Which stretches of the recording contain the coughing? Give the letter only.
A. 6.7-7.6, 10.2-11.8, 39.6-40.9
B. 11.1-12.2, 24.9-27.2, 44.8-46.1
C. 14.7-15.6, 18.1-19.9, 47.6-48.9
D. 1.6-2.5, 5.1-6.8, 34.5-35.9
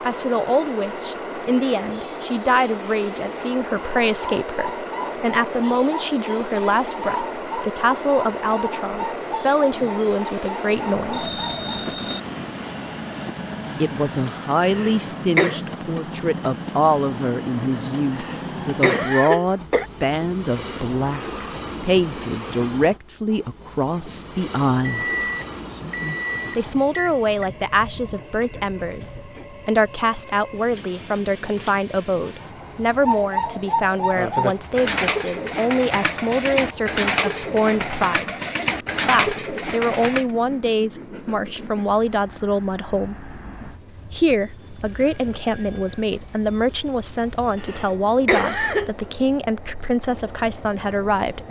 C.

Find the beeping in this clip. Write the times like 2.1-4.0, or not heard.
11.1-12.2, 24.9-27.2, 44.8-46.1.